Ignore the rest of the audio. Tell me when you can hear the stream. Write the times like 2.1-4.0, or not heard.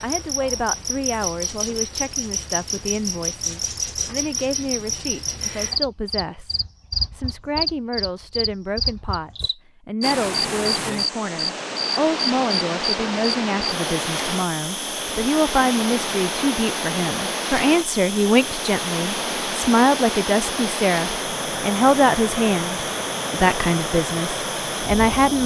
10.0-25.4.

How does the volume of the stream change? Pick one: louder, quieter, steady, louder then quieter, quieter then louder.
steady.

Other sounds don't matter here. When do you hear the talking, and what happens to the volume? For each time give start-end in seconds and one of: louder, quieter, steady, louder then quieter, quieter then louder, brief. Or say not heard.
0.0-25.4 louder.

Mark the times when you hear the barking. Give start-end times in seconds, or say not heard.
not heard.